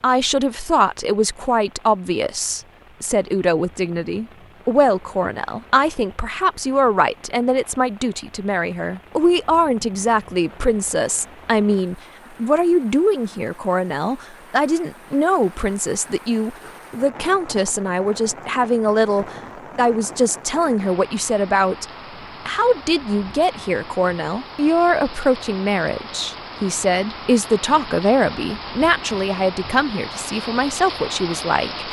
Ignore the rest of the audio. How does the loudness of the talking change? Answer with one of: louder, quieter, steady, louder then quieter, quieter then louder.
steady.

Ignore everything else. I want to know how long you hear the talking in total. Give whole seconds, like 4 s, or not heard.
31 s.